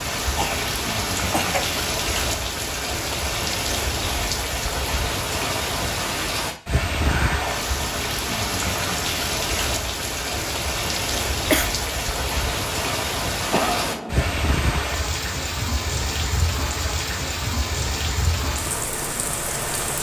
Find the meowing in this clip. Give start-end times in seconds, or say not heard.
7.0-7.7.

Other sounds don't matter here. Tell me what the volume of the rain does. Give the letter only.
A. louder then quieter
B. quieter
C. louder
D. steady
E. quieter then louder
D.